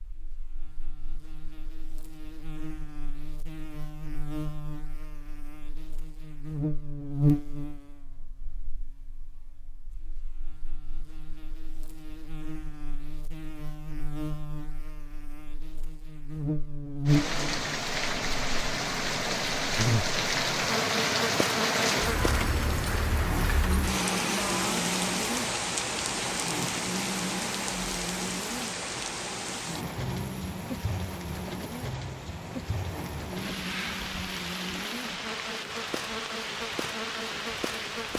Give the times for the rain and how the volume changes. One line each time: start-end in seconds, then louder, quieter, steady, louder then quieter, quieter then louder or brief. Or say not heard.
17.1-38.1 quieter.